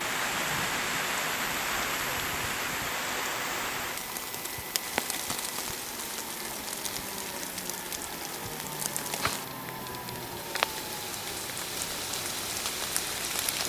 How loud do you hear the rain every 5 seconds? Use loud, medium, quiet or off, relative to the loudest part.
loud, medium, loud.